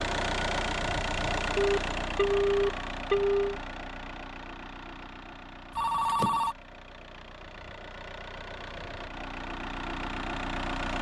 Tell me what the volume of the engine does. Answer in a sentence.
The volume of the engine goes down, then up.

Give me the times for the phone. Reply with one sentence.
The phone can be heard from 1.6 to 3.6 s and from 5.8 to 6.5 s.